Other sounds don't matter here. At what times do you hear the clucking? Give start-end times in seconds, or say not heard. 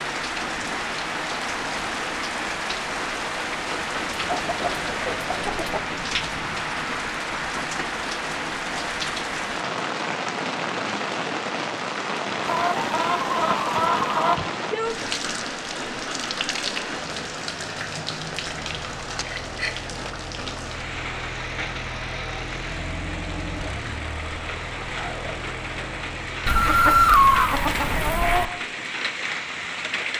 4.1-5.8, 12.4-14.4, 26.4-28.4.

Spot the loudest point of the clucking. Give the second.
27 s.